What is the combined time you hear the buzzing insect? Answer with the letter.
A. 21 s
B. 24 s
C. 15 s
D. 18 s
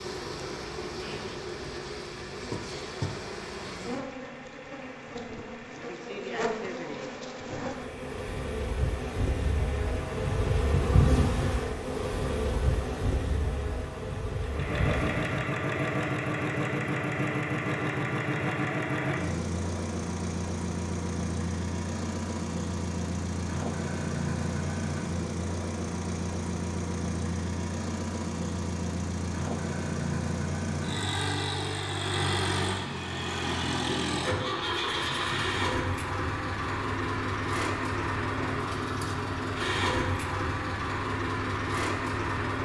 C.